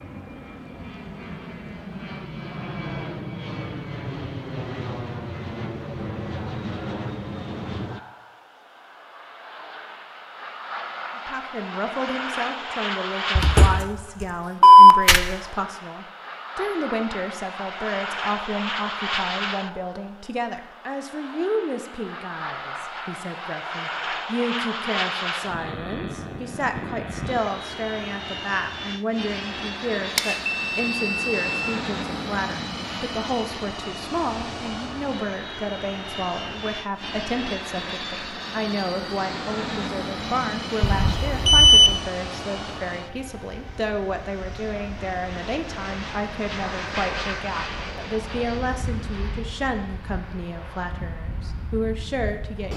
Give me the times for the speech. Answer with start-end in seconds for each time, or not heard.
11.2-52.7.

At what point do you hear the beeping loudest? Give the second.
15 s.